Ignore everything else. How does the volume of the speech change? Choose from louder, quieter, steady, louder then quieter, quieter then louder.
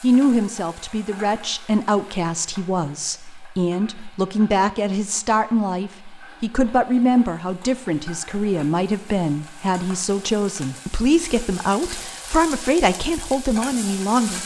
steady.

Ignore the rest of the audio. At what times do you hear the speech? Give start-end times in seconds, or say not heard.
0.0-14.4.